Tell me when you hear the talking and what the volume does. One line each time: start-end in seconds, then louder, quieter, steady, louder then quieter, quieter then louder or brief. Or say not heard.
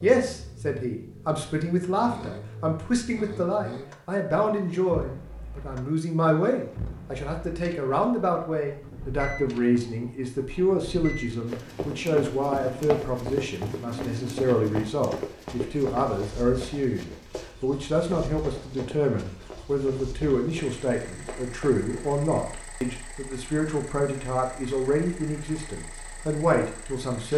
0.0-27.3 steady.